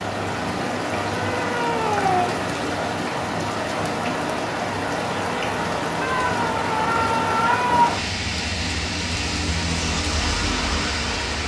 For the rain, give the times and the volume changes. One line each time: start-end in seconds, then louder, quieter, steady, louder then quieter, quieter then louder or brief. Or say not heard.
0.0-11.4 steady.